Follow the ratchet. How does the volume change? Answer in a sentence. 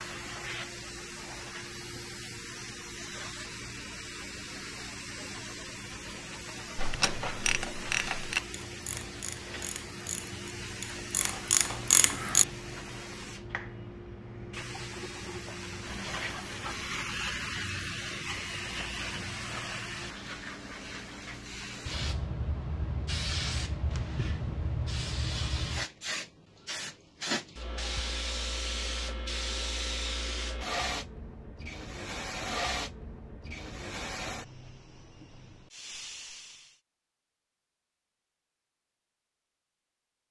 The loudness of the ratchet goes down, then up.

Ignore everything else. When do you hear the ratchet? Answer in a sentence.
The ratchet can be heard from 6.8 to 12.4 s.